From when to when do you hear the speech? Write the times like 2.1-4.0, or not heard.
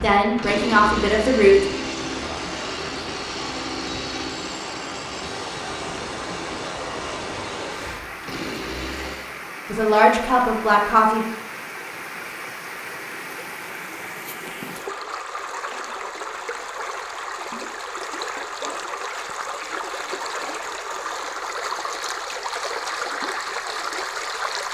0.0-1.6, 9.7-11.2.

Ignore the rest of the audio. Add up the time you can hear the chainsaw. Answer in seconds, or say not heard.
9 s.